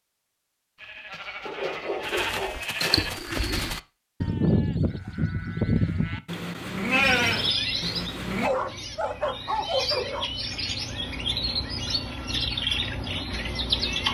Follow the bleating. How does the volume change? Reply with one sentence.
The loudness of the bleating goes up.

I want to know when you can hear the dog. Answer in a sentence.
The dog can be heard from 1.4 to 3.1 s and from 8.4 to 10.3 s.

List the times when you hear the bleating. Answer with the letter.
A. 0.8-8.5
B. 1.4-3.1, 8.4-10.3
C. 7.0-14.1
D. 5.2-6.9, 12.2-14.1
A.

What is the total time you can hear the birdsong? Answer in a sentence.
The birdsong can be heard for 7 seconds in total.